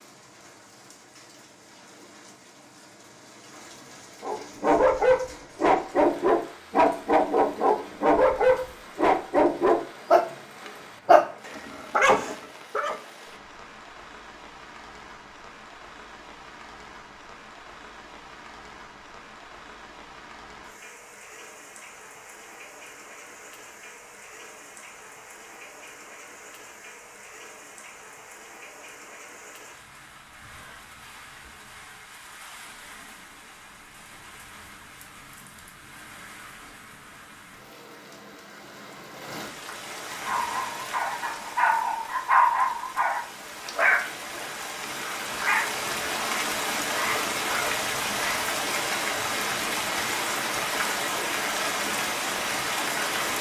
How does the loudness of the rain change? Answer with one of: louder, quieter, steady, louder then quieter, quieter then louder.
louder.